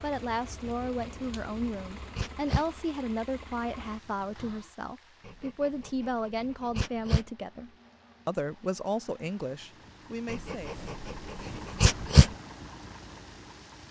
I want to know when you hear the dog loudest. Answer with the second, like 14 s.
12 s.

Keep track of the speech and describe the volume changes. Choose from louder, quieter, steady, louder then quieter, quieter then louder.
steady.